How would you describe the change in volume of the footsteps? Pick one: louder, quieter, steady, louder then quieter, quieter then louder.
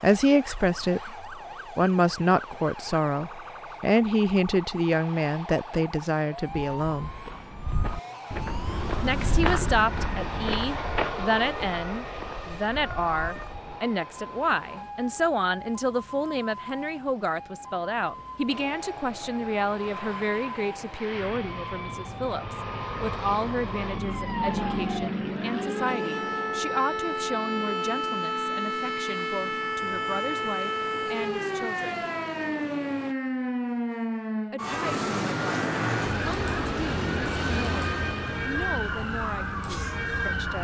louder then quieter.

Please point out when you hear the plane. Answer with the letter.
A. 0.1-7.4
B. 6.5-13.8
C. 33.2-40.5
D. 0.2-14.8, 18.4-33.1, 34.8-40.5
D.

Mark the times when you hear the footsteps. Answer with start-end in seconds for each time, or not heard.
6.5-13.8.